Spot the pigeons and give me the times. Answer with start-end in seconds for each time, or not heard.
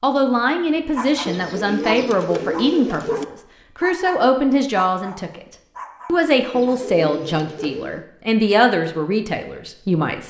1.2-3.2, 6.5-8.1.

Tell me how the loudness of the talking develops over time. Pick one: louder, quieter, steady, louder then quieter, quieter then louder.
steady.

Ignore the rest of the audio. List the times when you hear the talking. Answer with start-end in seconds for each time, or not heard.
0.0-5.5, 6.0-10.2.